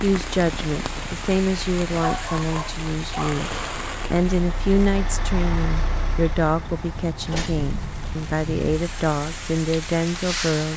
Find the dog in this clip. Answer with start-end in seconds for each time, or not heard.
1.9-3.4.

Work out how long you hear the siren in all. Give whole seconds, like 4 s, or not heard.
not heard.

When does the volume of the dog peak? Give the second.
2 s.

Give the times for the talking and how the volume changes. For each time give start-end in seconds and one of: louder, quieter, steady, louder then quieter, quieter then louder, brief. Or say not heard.
0.0-10.7 steady.